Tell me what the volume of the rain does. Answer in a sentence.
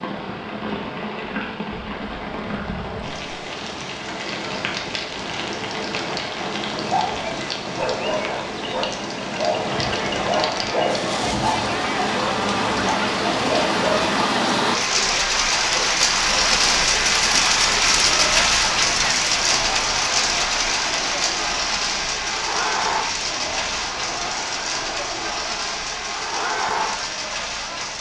The loudness of the rain goes up, then down.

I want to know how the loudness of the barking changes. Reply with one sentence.
The volume of the barking stays about the same.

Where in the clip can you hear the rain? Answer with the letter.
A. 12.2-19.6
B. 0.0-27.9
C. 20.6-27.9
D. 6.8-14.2
B.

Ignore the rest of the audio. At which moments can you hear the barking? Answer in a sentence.
The barking can be heard from 6.8 to 14.2 s.